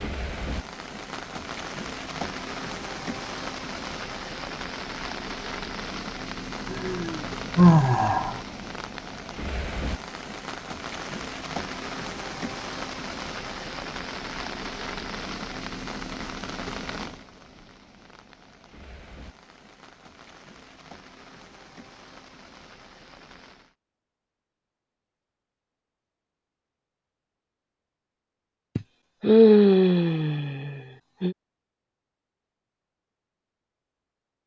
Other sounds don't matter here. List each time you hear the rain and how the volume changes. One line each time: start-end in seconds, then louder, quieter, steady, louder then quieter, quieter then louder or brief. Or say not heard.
0.0-23.8 quieter.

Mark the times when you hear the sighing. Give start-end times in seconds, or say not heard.
6.7-8.4, 28.8-31.4.